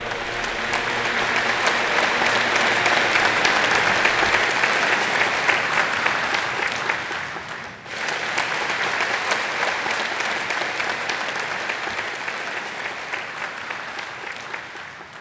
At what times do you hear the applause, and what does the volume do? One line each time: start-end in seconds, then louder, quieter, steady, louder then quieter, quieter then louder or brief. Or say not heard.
0.0-15.1 quieter.